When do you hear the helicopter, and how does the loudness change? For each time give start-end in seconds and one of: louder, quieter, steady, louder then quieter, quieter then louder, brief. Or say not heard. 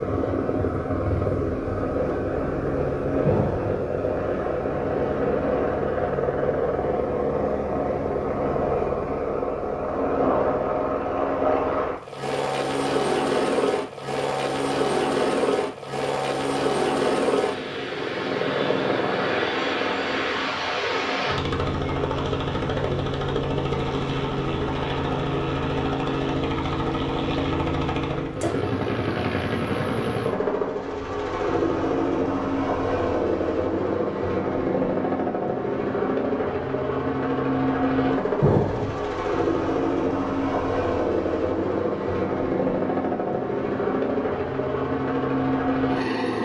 0.0-46.4 steady.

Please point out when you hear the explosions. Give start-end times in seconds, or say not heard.
3.2-3.8, 38.4-39.1.